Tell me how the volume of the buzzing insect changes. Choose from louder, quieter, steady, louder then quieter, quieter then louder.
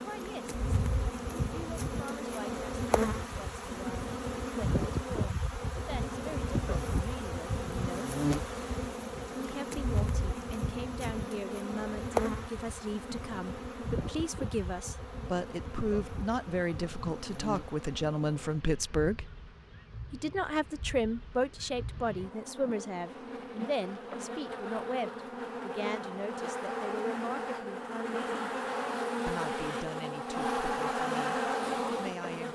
quieter then louder.